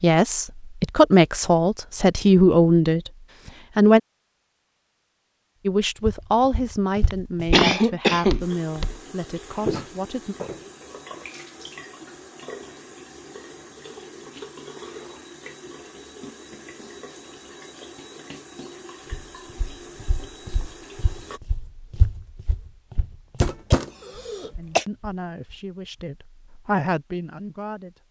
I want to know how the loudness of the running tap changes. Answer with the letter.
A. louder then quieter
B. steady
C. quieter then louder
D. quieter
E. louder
B.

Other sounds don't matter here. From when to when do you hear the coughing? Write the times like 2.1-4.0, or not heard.
7.1-8.4, 23.4-24.9.